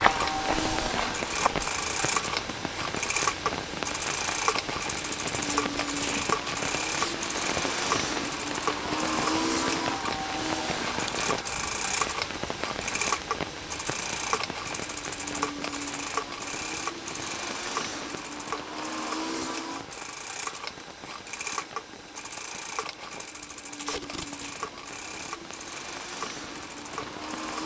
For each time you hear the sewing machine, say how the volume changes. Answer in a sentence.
The sewing machine can be heard from 0.0 to 27.6 s, getting quieter.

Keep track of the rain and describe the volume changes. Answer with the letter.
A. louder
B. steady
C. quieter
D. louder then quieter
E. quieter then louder
C.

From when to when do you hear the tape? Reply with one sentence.
You can hear the tape from 5.5 to 7.2 s and from 23.8 to 24.6 s.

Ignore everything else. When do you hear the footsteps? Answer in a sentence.
You can hear the footsteps from 0.0 to 1.7 s.